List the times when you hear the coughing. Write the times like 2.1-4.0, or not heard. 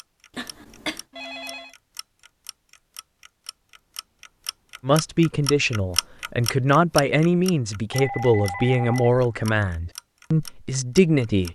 0.3-1.1.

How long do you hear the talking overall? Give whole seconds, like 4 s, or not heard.
7 s.